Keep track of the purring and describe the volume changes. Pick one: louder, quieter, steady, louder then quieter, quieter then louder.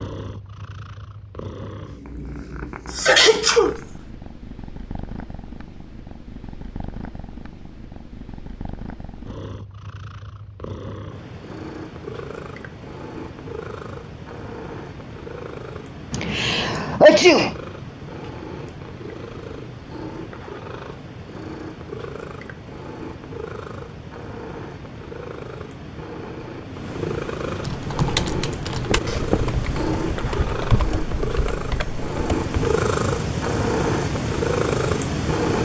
louder.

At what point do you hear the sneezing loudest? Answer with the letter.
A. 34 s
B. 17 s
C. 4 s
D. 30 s
B.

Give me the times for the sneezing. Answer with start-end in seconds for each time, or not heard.
2.9-3.8, 16.1-17.6, 28.9-29.4.